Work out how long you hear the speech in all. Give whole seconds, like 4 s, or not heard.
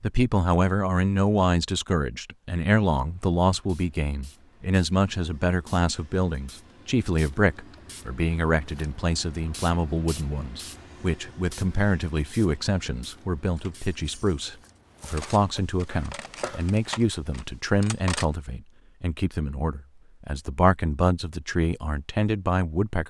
23 s.